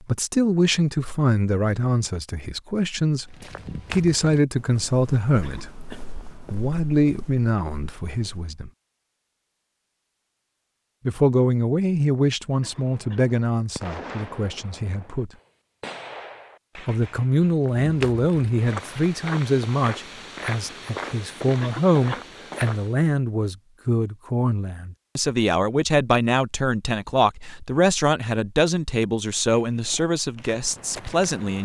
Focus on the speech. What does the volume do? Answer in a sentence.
The volume of the speech stays about the same.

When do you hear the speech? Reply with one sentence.
The speech can be heard from 0.1 to 8.7 s, from 11.1 to 15.3 s and from 16.9 to 31.5 s.